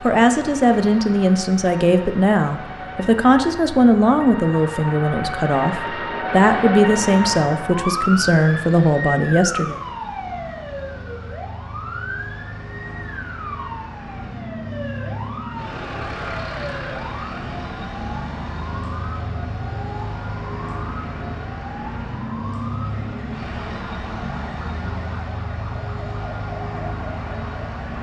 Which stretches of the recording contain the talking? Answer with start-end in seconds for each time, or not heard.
0.0-9.8.